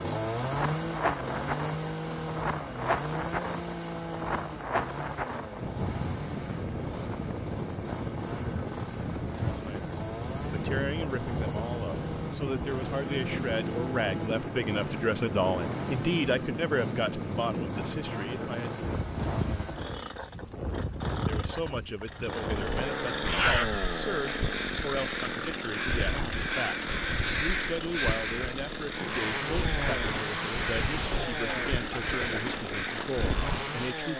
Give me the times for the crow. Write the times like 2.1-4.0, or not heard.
22.8-33.5.